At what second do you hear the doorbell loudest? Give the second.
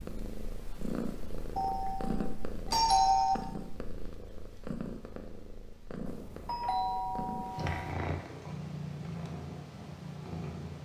3 s.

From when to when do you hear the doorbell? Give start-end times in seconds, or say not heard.
1.6-3.4, 6.0-8.0.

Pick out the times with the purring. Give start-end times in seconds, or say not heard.
0.0-10.8.